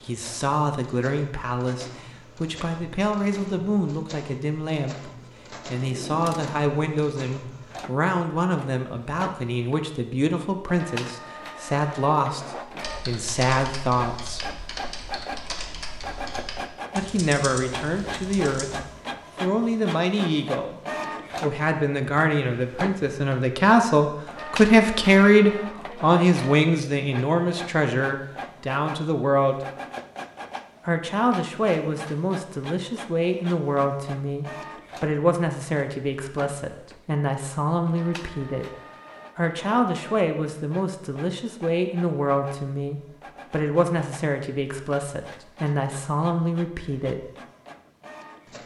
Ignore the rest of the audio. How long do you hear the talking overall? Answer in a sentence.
The talking can be heard for 42 seconds in total.